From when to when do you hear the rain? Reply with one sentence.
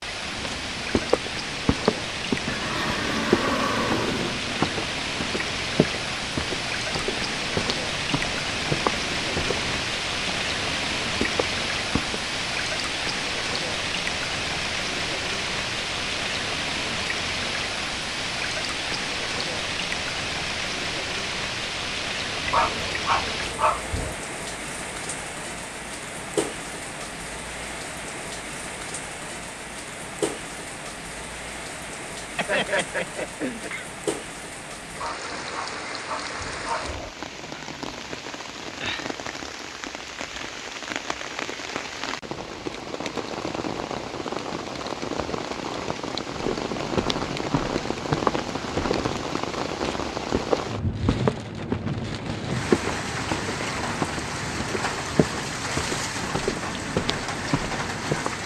You can hear the rain from 0.0 to 58.4 s.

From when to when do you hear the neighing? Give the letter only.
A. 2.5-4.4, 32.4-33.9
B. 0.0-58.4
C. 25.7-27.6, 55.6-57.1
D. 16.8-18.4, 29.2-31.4
A.